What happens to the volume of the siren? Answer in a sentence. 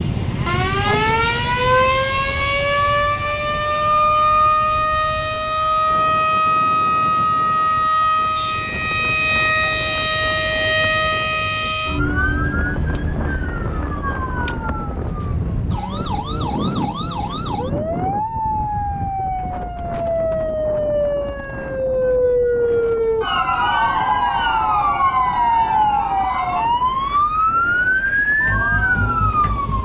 The loudness of the siren goes down, then up.